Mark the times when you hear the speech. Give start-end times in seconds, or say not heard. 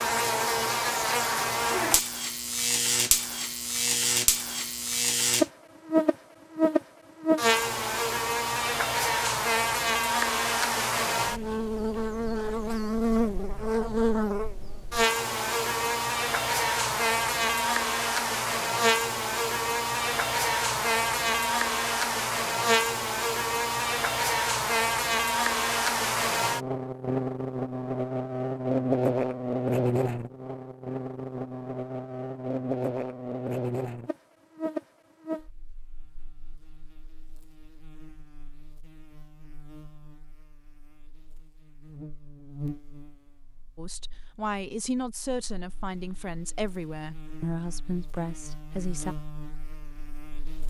43.8-49.1.